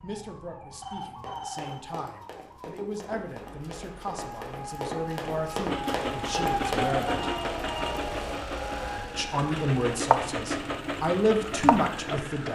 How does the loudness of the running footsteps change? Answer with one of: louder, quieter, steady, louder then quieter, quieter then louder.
louder.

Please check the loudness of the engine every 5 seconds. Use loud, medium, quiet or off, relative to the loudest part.
off, loud, loud.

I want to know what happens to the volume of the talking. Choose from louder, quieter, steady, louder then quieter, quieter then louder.
louder.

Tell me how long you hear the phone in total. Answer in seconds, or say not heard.
2 s.